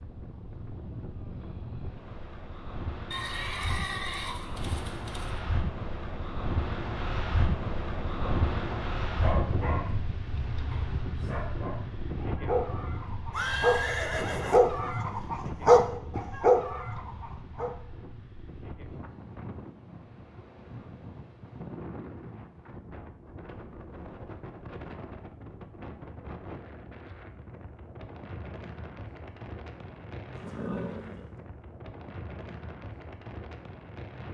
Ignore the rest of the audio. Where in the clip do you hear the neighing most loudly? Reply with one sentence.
The loudest moment of the neighing is at 14 seconds.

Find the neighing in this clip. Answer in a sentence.
The neighing can be heard from 3.1 to 5.3 s, from 13.3 to 14.7 s and from 30.3 to 31.3 s.